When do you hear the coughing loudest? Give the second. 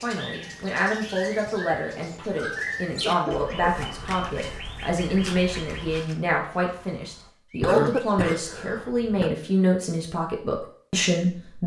8 s.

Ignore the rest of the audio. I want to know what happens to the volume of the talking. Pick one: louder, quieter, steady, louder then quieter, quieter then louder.
steady.